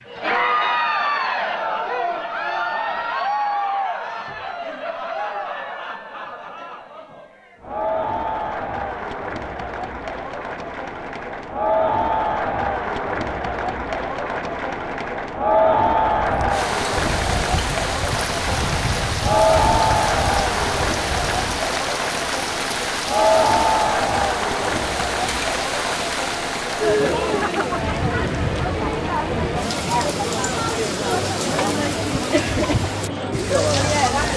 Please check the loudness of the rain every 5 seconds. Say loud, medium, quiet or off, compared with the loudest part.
off, off, off, loud, loud, loud, loud.